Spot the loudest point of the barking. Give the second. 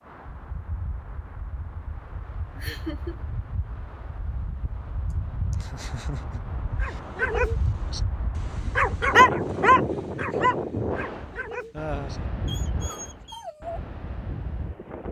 9 s.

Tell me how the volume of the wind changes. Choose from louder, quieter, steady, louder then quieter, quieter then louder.
louder then quieter.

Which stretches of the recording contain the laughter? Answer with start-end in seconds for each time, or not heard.
2.5-3.2, 5.5-7.0, 11.7-12.3.